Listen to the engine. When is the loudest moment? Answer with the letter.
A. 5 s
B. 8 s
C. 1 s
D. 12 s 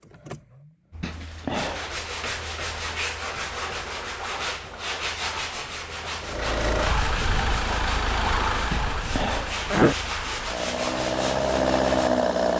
D.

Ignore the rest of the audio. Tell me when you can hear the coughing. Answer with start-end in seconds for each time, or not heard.
1.0-1.9, 8.7-9.9.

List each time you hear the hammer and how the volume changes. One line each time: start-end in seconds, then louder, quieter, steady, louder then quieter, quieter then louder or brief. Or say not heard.
not heard.